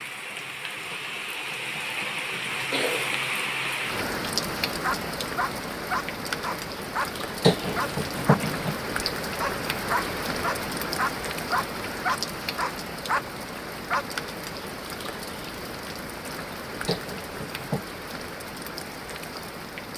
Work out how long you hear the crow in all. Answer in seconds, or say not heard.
not heard.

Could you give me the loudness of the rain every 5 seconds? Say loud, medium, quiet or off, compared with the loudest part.
loud, loud, loud, medium.